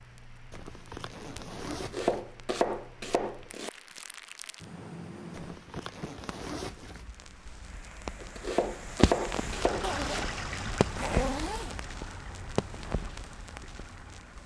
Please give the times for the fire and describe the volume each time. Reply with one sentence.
The fire can be heard from 0.0 to 14.4 s, getting louder then quieter.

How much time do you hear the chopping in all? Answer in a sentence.
The chopping can be heard for 4 seconds in total.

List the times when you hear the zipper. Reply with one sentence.
The zipper can be heard from 0.5 to 2.2 s, from 5.3 to 7.0 s and from 9.8 to 11.9 s.